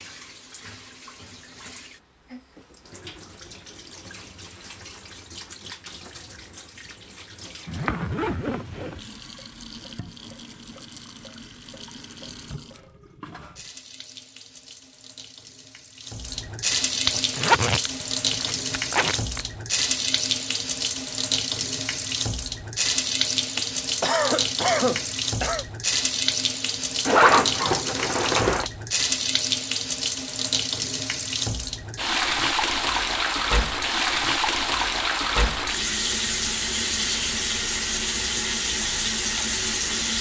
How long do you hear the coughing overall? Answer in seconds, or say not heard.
2 s.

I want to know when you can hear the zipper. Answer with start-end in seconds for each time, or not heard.
7.7-9.0, 17.1-19.4, 27.1-28.7.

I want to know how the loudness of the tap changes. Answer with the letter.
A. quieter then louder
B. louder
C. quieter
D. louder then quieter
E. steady
B.